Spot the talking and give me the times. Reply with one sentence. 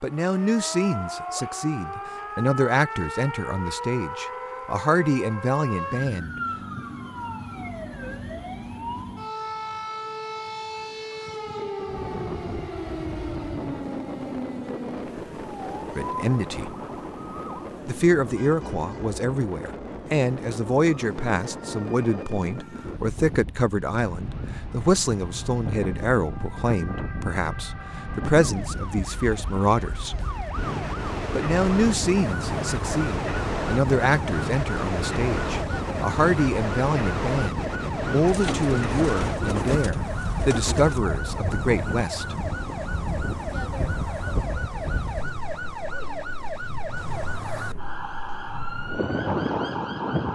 You can hear the talking from 0.0 to 6.8 s, from 15.9 to 16.8 s, from 17.9 to 30.2 s and from 31.3 to 42.4 s.